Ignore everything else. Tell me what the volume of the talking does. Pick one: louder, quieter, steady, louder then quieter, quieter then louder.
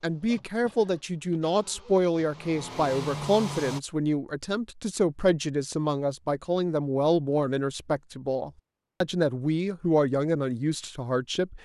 steady.